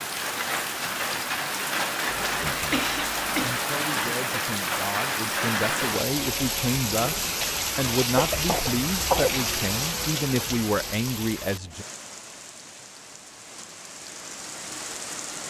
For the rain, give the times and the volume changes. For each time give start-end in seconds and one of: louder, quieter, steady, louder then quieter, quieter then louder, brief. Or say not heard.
0.0-15.4 quieter.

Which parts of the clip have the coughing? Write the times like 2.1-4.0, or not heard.
2.1-3.6, 8.2-9.4.